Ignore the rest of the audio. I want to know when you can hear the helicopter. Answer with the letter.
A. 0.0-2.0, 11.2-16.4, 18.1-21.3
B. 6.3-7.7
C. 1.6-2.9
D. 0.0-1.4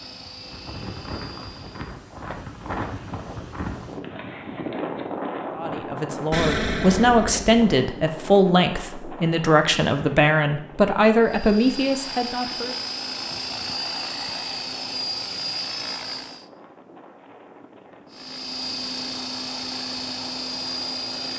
A.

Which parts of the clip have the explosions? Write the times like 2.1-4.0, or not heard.
6.3-7.7.